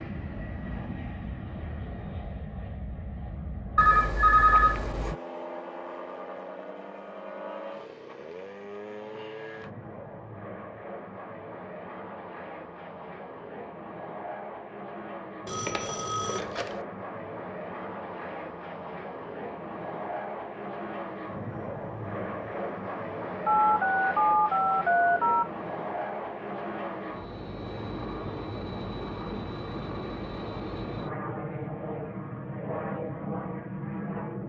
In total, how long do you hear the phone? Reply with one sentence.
The phone can be heard for 5 seconds in total.